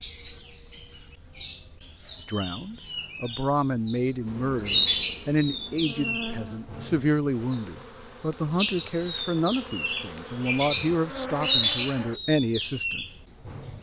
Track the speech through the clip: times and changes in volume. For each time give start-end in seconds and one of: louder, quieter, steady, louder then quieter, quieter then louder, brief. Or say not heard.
2.1-13.1 steady.